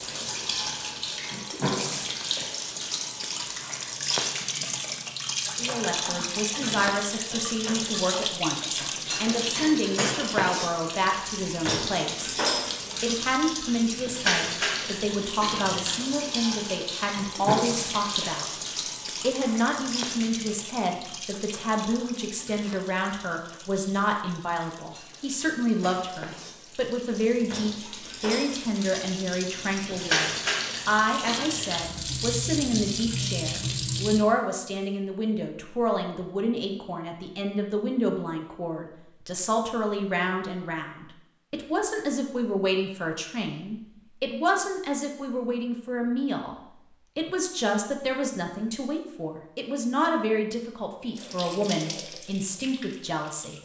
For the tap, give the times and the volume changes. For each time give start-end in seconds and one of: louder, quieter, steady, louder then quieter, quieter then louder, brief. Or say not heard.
0.0-34.2 quieter then louder
51.1-53.6 brief.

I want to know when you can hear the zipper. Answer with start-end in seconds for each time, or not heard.
not heard.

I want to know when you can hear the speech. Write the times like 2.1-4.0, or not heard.
5.5-12.4, 13.0-46.5, 47.1-53.6.